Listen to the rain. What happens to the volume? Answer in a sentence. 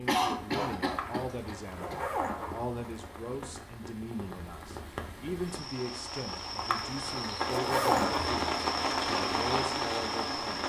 The volume of the rain goes up.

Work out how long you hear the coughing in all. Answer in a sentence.
You can hear the coughing for 2 seconds altogether.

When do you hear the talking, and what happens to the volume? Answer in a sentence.
The talking can be heard from 0.0 to 10.6 s, at a steady volume.